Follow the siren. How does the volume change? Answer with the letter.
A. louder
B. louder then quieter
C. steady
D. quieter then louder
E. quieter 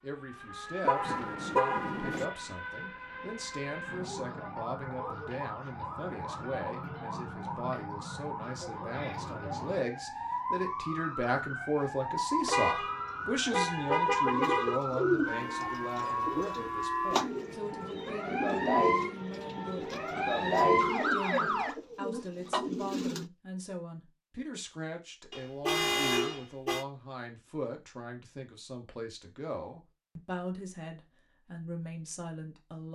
A.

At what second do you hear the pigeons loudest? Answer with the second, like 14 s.
15 s.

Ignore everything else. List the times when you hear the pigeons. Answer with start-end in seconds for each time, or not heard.
14.2-23.2.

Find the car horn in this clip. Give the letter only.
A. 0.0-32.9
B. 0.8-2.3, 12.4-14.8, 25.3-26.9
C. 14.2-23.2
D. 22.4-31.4
B.